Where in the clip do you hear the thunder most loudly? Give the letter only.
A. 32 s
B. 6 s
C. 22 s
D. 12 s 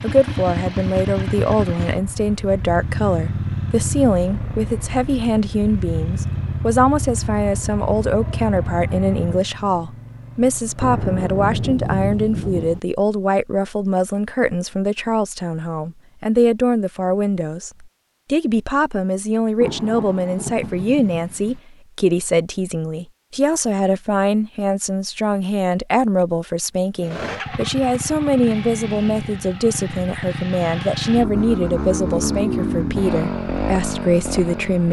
D.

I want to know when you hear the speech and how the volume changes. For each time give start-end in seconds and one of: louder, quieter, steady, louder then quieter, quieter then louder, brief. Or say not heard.
0.0-34.8 steady.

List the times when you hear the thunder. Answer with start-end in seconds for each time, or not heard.
10.8-12.8, 19.6-21.6.